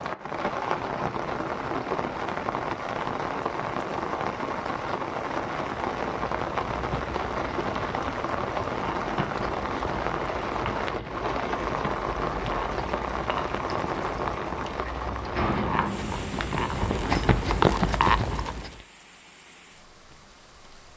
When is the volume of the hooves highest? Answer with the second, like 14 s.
18 s.